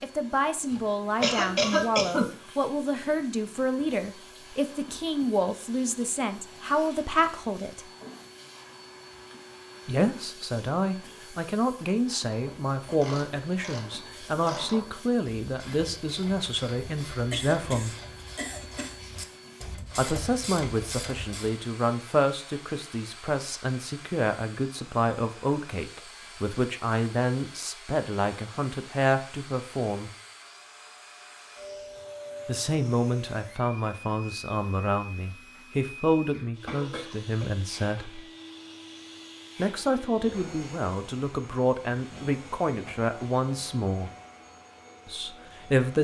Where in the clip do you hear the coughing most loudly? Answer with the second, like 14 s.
2 s.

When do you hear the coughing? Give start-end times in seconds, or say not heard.
0.7-2.3, 17.3-19.0, 36.6-38.2.